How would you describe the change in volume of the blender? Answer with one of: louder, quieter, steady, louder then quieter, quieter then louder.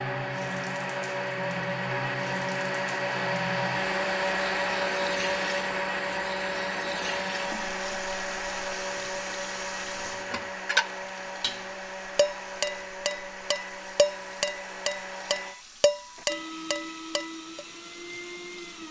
quieter.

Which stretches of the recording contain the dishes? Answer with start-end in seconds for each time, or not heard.
9.9-17.6.